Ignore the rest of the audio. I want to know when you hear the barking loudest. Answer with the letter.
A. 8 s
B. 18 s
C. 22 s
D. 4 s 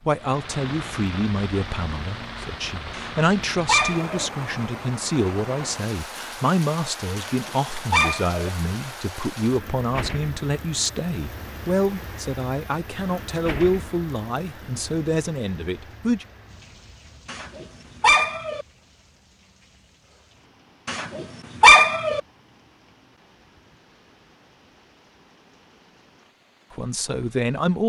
C.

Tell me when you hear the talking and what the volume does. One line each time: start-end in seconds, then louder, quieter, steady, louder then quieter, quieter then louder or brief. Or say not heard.
0.1-16.2 steady
26.7-27.8 brief.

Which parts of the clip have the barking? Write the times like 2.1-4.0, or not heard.
2.9-4.2, 7.2-8.5, 17.2-18.6, 20.9-22.2.